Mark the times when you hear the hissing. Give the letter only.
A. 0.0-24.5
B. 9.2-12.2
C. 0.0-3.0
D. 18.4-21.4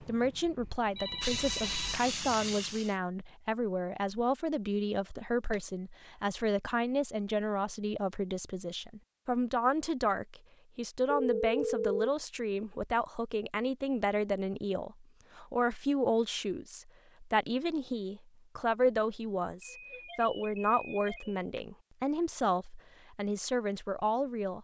C.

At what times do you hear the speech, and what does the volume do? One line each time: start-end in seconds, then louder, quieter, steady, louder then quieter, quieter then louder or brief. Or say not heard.
0.0-24.5 steady.